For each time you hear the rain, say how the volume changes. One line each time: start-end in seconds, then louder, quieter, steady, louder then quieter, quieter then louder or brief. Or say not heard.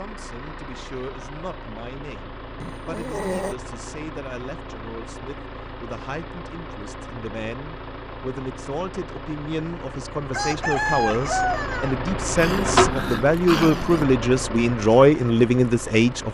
not heard.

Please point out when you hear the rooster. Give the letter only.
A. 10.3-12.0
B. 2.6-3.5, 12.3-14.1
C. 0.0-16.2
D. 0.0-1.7
A.